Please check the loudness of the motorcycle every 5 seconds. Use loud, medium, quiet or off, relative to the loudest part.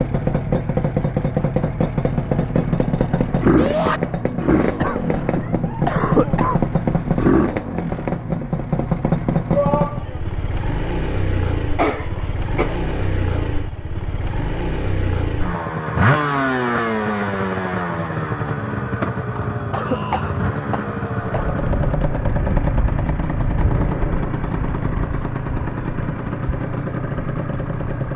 loud, loud, medium, loud, loud, medium.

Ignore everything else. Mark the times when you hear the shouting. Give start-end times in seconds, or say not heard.
3.5-4.0, 9.5-10.2, 19.9-20.4.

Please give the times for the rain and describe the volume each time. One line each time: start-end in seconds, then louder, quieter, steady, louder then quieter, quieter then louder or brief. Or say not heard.
not heard.